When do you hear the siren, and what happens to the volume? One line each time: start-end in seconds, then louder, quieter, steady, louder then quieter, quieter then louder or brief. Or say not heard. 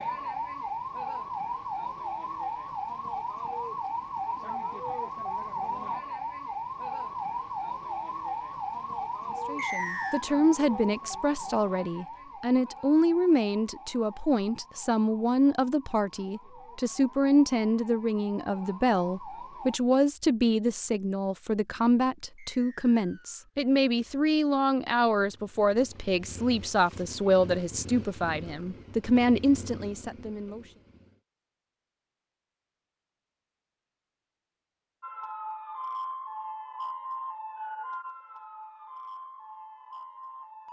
0.0-19.8 quieter
35.0-40.6 quieter.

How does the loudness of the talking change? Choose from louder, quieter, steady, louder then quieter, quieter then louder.
steady.